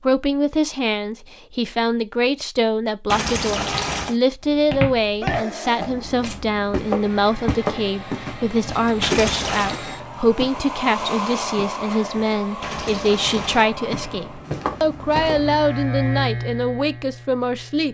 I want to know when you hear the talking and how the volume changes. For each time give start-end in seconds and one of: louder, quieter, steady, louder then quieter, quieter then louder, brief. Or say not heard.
0.0-17.8 steady.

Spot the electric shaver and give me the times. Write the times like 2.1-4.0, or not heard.
15.4-17.8.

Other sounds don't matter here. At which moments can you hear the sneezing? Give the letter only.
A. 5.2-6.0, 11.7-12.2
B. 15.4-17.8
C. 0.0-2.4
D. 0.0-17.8
A.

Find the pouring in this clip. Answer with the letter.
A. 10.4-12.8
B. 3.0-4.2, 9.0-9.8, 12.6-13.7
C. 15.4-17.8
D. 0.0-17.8
B.